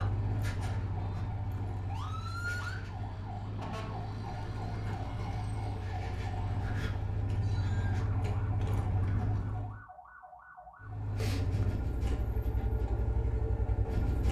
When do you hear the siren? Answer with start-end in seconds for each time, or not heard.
0.1-11.1.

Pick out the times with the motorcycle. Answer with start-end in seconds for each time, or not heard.
0.0-9.8, 10.8-14.2.